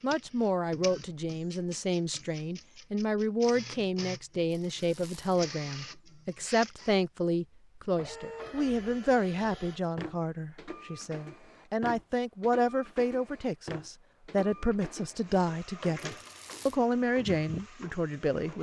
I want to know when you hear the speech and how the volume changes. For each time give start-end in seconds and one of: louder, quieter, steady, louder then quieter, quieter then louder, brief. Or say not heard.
0.0-18.5 steady.